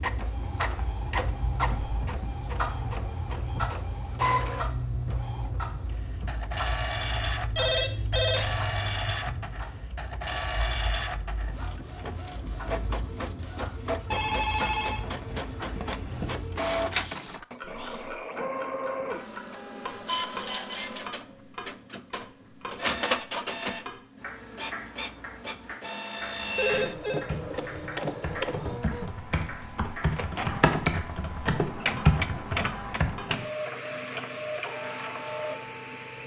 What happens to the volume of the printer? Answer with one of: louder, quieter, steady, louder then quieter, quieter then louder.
steady.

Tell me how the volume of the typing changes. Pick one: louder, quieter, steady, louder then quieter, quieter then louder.
louder.